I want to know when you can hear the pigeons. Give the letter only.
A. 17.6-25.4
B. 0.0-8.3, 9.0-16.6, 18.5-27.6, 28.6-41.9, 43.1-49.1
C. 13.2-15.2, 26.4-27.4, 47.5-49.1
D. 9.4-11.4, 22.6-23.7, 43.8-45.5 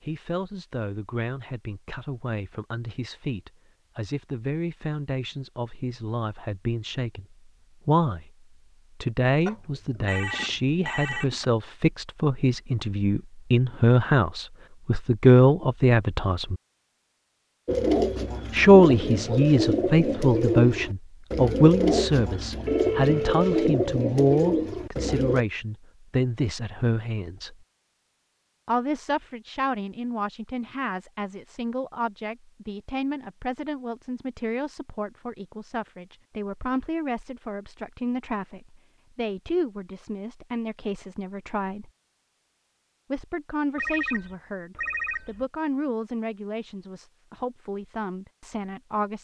A.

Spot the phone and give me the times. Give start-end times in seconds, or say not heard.
9.4-11.4, 22.6-23.7, 43.8-45.5.